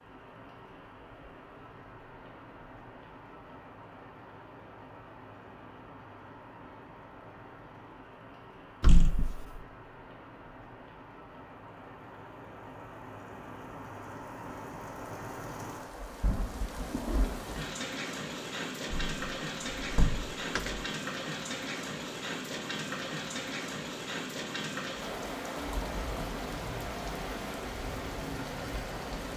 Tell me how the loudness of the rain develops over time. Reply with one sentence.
The loudness of the rain goes up.